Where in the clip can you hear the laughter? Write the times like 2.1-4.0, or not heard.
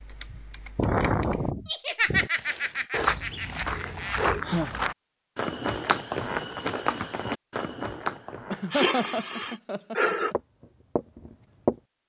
1.6-4.2, 8.5-10.3.